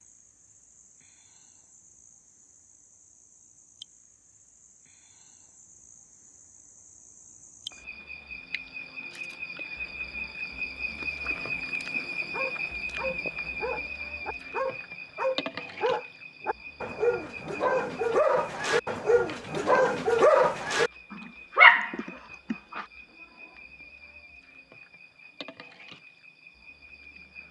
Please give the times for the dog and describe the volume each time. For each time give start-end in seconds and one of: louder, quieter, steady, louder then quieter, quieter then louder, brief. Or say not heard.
12.3-22.9 louder.